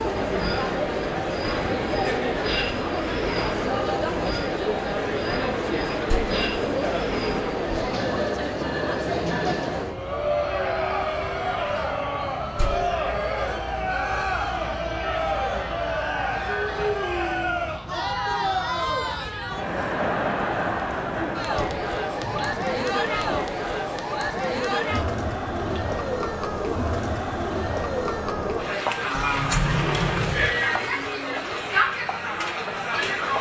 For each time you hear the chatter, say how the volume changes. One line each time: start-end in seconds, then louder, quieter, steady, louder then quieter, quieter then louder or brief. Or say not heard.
0.0-33.3 steady.